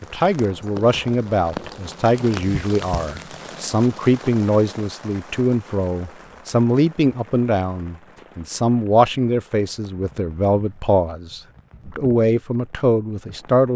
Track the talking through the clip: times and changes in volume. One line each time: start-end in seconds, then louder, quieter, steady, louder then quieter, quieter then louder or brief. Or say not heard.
0.0-13.7 steady.